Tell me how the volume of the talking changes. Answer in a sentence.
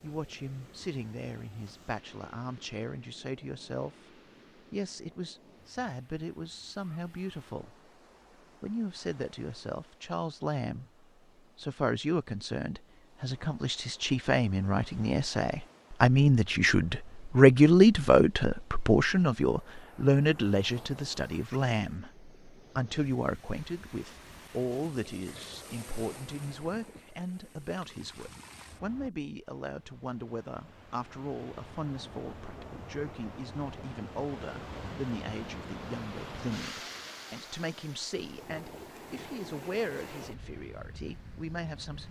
The volume of the talking goes up, then down.